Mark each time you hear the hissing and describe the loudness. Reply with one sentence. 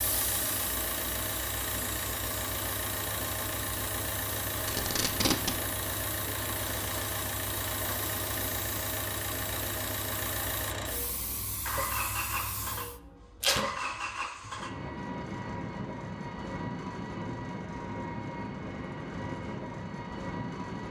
The hissing can be heard from 0.0 to 13.0 s, at a steady volume.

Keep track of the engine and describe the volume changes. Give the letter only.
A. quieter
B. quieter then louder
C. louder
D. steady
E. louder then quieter
D.